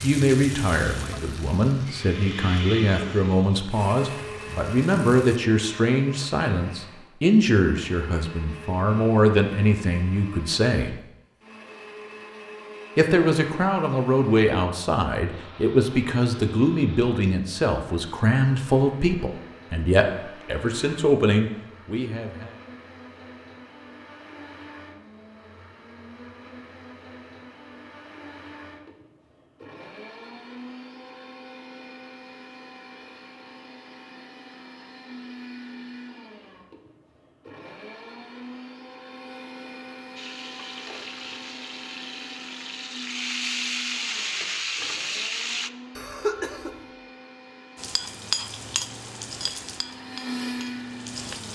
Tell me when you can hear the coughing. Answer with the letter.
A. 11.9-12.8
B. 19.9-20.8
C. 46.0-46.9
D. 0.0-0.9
C.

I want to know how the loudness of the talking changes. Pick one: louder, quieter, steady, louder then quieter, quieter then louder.
steady.